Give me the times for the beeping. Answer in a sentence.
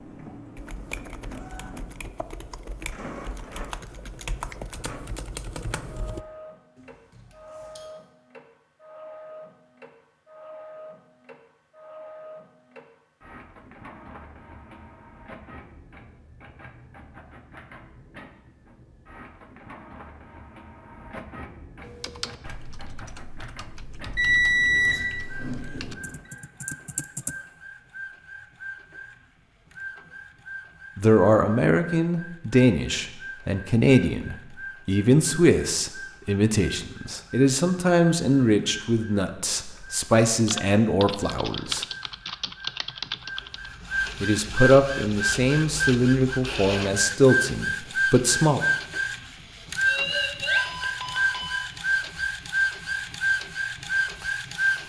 You can hear the beeping from 7.2 to 7.8 s, from 24.1 to 25.9 s and from 49.9 to 51.7 s.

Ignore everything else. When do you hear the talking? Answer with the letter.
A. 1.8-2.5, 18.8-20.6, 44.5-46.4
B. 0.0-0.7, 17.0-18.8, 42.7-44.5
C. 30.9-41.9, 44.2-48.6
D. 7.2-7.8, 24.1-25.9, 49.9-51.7
C.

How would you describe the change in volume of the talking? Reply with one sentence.
The loudness of the talking stays about the same.